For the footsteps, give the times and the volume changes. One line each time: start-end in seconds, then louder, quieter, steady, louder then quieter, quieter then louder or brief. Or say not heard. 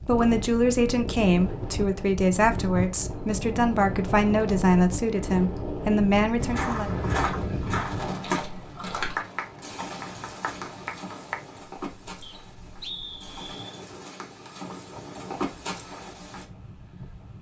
6.3-16.4 quieter then louder.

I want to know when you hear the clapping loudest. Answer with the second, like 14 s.
9 s.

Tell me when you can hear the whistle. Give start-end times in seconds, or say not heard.
12.2-13.8.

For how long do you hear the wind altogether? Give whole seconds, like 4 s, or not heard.
17 s.